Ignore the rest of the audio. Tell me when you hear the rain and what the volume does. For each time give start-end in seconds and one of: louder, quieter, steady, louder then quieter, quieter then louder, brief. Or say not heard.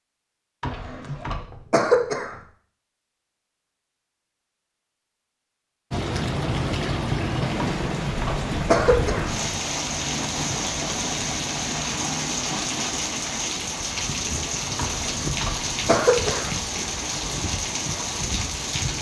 5.9-18.9 steady.